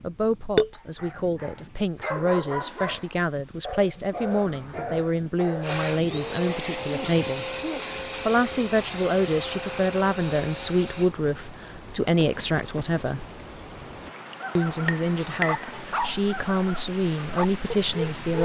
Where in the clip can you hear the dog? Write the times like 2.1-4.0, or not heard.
0.7-5.8, 14.4-18.4.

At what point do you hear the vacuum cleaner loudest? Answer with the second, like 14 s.
6 s.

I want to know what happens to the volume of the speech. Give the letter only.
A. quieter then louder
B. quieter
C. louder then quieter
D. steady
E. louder
D.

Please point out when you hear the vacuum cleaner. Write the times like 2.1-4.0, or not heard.
5.6-11.2.